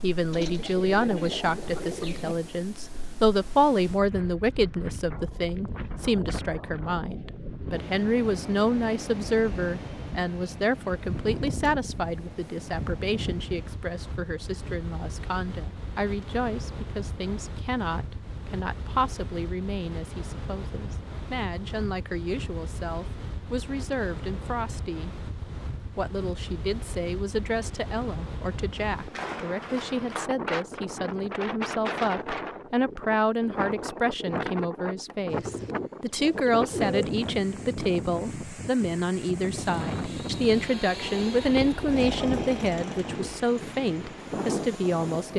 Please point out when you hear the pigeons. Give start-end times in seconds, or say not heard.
0.3-2.4, 35.3-37.1.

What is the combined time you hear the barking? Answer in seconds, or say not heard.
not heard.